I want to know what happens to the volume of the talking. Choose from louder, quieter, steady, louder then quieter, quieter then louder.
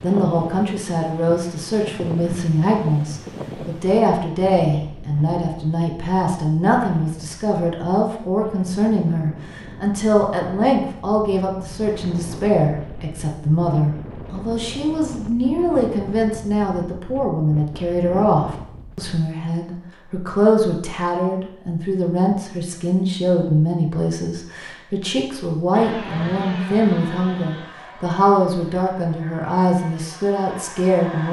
steady.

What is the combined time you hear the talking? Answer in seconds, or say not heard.
31 s.